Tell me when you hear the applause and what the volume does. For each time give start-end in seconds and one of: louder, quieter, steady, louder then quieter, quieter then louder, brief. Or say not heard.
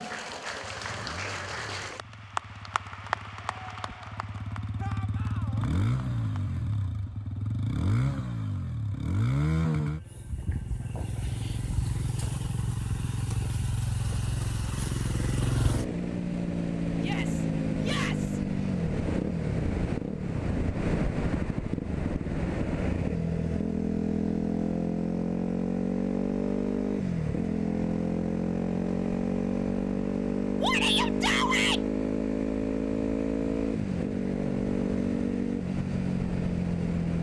0.0-6.6 quieter.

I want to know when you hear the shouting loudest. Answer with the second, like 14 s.
31 s.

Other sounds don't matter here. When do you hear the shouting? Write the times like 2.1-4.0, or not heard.
4.8-5.7, 16.9-18.4, 30.6-31.8.